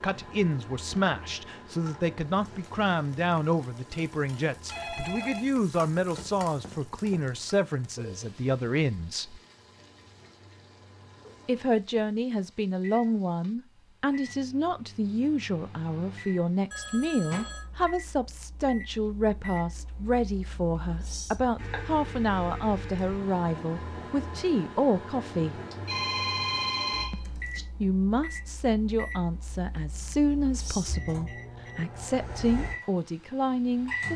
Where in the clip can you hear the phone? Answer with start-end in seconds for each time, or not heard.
4.7-7.2, 16.7-17.6, 25.7-27.6.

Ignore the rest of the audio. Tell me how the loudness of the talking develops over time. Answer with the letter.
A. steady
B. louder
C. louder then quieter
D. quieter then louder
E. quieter
A.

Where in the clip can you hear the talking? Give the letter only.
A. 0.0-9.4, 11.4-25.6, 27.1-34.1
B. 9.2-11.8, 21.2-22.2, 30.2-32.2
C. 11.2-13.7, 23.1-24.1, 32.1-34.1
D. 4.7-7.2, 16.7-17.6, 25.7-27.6
A.